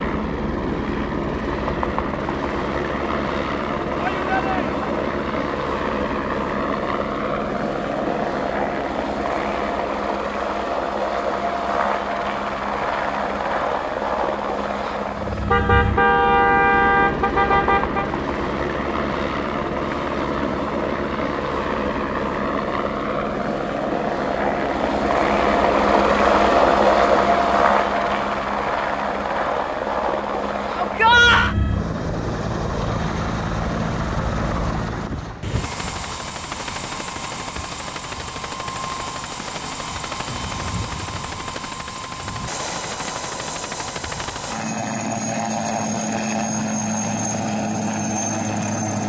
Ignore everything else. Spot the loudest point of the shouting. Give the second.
31 s.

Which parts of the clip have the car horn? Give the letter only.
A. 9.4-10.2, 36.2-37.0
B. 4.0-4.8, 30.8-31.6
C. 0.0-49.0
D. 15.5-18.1
D.